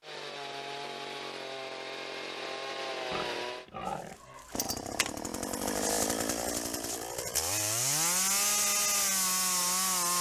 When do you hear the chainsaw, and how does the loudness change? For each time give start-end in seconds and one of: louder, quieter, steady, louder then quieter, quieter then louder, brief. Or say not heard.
0.0-10.1 louder.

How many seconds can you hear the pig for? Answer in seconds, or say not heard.
2 s.